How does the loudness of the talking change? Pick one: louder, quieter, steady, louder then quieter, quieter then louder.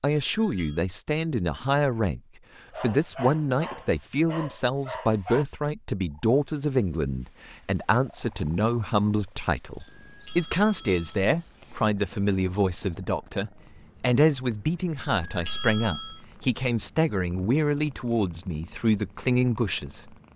steady.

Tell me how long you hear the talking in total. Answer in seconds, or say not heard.
20 s.